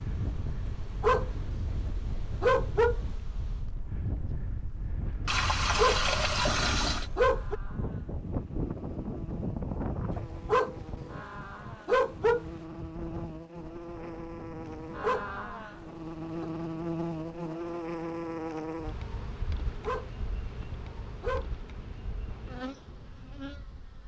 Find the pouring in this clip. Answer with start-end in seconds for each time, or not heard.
5.2-7.1.